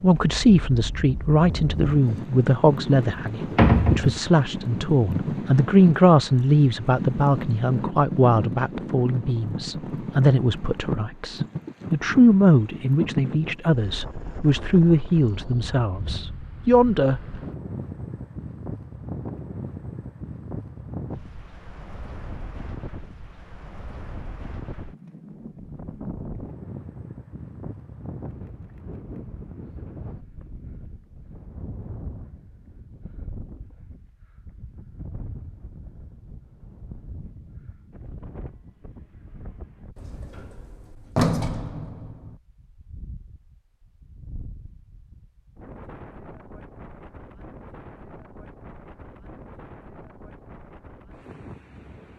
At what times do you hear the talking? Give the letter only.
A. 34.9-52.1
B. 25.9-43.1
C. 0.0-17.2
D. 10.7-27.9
C.